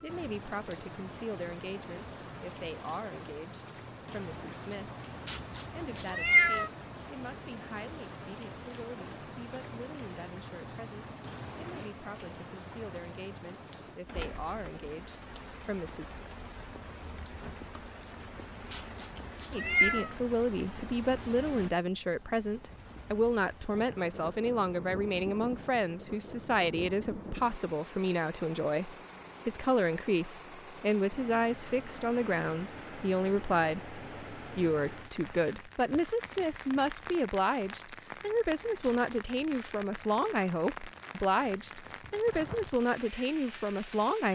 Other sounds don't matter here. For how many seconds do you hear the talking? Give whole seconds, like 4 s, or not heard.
40 s.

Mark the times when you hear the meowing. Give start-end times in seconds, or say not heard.
5.2-6.7, 18.7-20.1, 38.8-39.7.